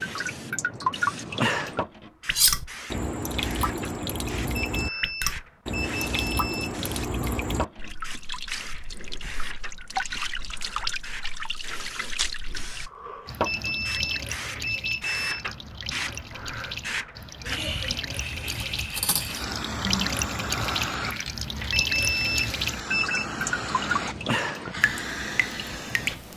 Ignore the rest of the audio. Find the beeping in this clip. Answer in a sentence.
The beeping can be heard from 4.5 to 6.8 s, from 13.4 to 15.4 s and from 21.7 to 23.4 s.